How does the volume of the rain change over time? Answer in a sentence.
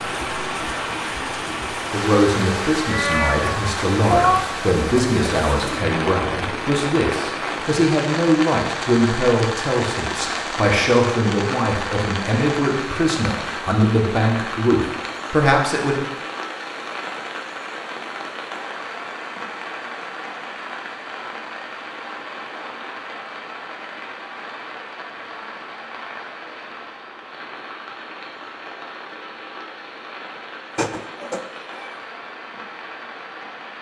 The loudness of the rain goes down.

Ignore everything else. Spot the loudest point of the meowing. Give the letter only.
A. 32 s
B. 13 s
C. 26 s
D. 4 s
D.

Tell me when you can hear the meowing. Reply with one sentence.
You can hear the meowing from 2.8 to 4.5 s and from 30.8 to 31.9 s.